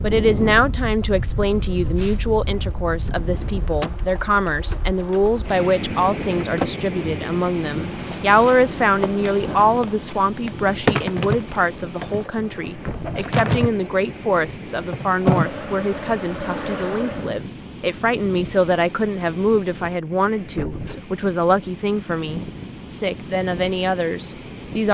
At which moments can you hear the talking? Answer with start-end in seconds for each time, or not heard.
0.0-24.8.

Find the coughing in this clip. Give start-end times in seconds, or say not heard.
not heard.